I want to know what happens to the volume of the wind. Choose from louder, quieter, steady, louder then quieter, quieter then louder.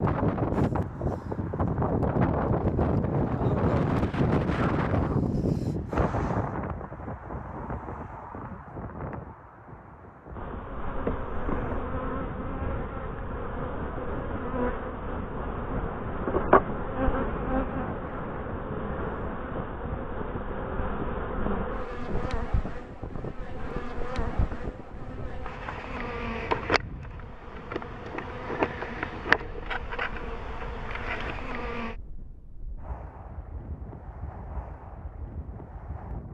quieter.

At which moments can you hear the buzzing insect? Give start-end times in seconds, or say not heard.
10.3-31.9.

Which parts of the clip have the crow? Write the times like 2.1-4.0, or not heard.
not heard.